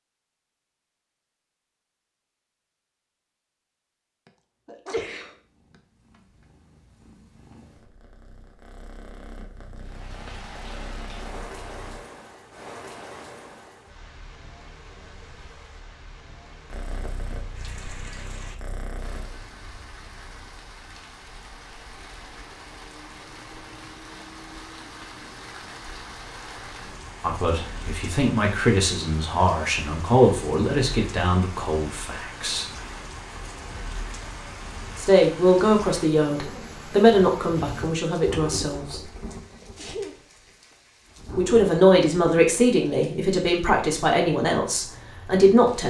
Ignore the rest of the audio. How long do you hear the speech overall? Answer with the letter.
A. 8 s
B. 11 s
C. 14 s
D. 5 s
C.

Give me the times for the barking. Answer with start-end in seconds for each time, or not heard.
not heard.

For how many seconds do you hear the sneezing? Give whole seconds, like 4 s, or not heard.
3 s.